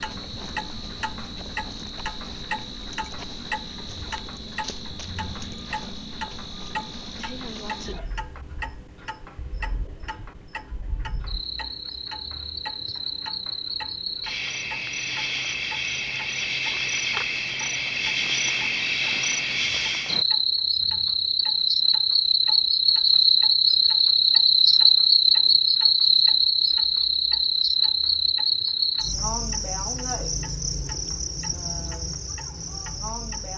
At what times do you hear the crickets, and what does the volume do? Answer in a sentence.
You can hear the crickets from 0.0 to 33.5 s, getting louder then quieter.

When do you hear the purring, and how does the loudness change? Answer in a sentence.
You can't hear the purring here.